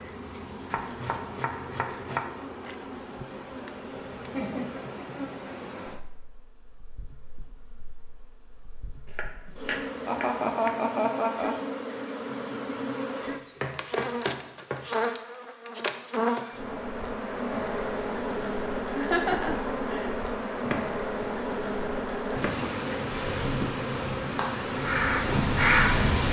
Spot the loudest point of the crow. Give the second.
26 s.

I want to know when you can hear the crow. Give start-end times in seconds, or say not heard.
23.1-26.2.